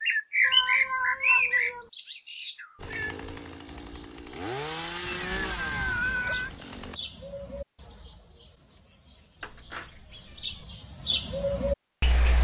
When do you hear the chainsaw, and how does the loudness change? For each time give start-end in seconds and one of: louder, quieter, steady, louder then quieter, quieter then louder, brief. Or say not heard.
2.8-7.0 louder then quieter.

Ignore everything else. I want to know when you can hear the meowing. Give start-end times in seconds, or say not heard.
0.4-1.9, 5.0-6.5, 9.4-10.7.